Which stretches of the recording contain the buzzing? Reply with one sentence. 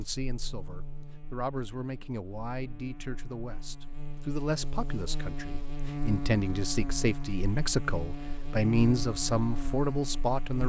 You can hear the buzzing from 0.0 to 10.6 s.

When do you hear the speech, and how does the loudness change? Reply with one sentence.
You can hear the speech from 0.0 to 10.6 s, getting louder.